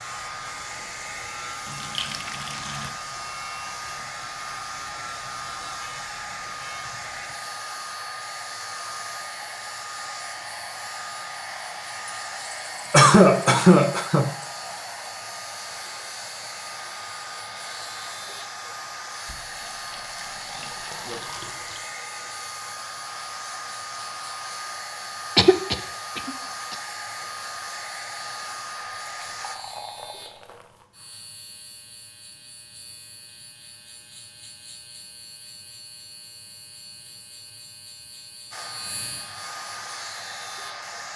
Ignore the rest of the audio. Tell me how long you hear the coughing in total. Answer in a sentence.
The coughing can be heard for 3 seconds in total.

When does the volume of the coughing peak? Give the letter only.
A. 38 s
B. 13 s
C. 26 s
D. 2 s
B.